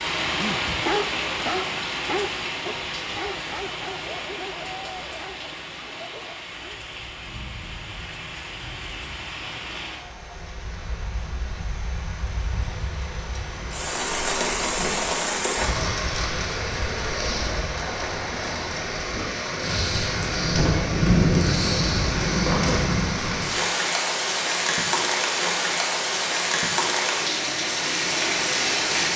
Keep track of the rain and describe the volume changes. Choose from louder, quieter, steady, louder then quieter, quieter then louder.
quieter then louder.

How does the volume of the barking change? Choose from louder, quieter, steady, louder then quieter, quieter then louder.
quieter.